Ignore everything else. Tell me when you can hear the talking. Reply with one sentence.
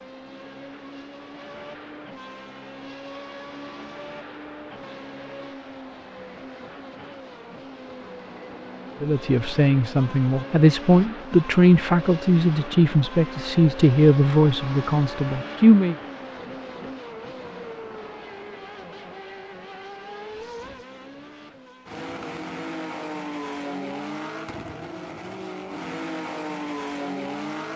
The talking can be heard from 9.0 to 15.9 s.